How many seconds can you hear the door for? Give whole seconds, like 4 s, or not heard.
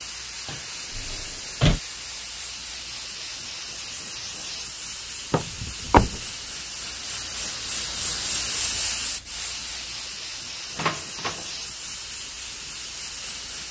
3 s.